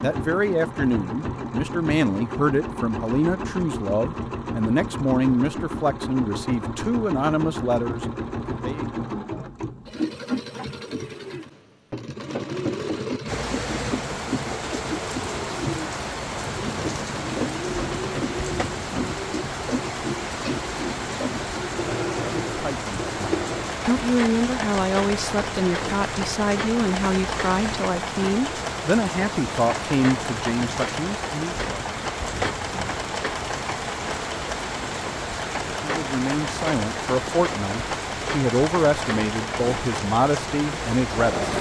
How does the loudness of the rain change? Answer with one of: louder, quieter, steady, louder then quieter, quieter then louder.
steady.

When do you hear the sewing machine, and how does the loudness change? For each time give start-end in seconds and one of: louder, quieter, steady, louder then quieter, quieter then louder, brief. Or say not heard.
0.0-41.5 steady.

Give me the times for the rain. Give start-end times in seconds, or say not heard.
13.2-41.5.